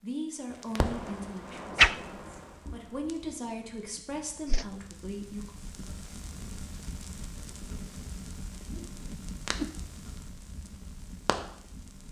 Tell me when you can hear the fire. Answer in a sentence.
The fire can be heard from 0.5 to 12.0 s.